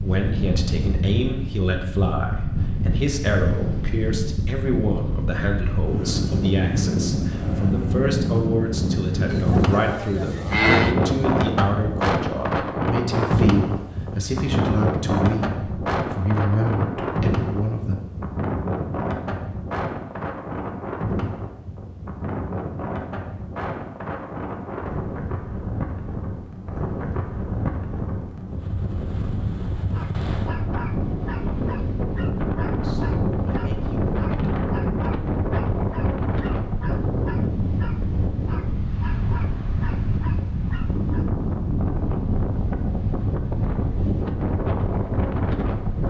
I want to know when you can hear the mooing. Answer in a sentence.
You can hear the mooing from 9.3 to 10.9 s.